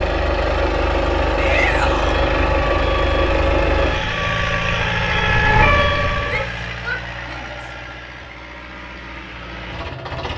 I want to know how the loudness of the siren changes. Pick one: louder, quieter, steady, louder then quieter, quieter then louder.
louder.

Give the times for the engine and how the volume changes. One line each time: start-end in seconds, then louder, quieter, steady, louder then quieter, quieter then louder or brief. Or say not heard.
0.0-10.3 quieter.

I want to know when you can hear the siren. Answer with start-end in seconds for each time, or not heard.
2.0-6.5.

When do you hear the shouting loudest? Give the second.
2 s.